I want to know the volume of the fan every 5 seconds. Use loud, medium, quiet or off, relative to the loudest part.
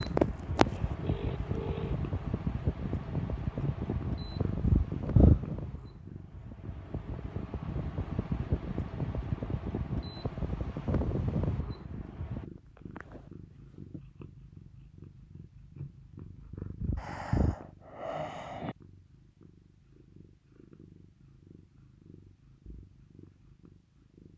loud, loud, loud, off, off.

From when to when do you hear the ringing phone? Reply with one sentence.
The ringing phone can be heard from 1.0 to 1.9 s.